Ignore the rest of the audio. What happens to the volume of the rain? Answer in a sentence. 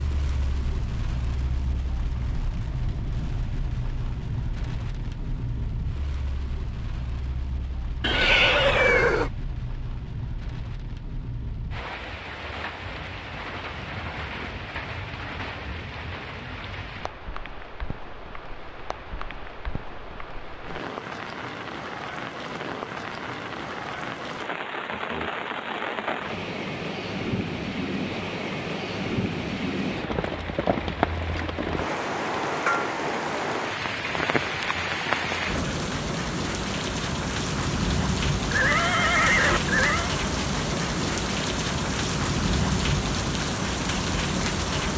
The loudness of the rain goes up.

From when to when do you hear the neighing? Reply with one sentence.
The neighing can be heard from 8.0 to 9.3 s and from 38.5 to 40.1 s.